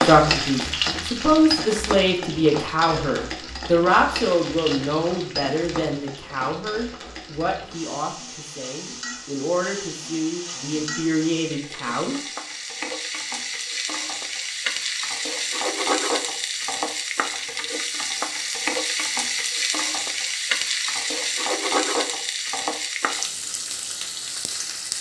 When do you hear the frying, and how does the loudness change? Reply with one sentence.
The frying can be heard from 0.0 to 24.9 s, getting quieter then louder.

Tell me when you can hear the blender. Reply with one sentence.
You can't hear the blender here.